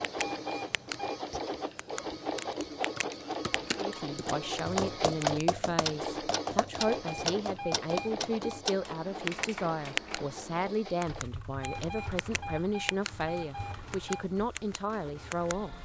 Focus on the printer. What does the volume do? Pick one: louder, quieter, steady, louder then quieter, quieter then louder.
quieter.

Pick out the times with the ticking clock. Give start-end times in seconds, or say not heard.
0.0-0.9, 1.8-3.8, 4.5-10.2, 11.0-13.1, 13.9-15.6.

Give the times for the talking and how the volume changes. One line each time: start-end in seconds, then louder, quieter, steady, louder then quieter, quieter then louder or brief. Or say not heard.
3.8-15.8 steady.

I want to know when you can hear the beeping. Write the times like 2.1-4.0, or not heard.
0.1-1.2, 6.8-8.6, 11.6-14.2.